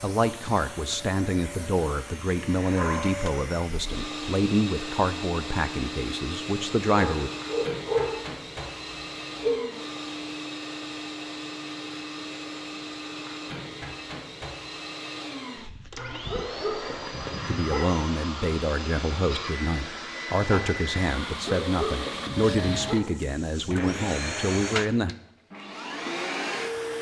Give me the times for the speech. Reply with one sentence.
You can hear the speech from 0.0 to 7.3 s and from 17.4 to 25.1 s.